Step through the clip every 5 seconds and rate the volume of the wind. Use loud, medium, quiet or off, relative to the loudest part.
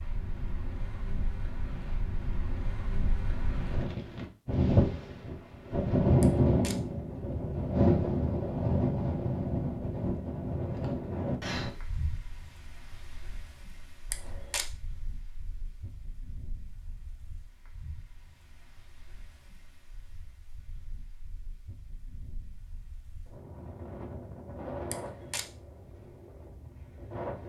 medium, loud, medium, quiet, quiet, quiet.